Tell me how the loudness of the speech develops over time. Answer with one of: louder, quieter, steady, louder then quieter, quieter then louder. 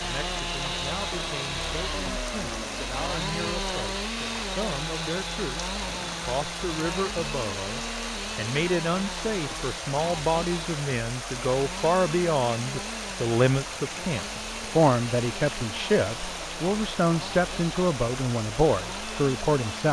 louder.